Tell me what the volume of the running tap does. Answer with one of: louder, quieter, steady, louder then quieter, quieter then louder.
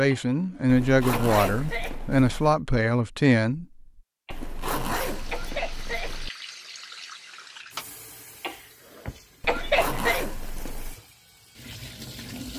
quieter then louder.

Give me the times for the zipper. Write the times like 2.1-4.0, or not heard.
0.7-2.6, 4.3-6.3, 9.4-10.9.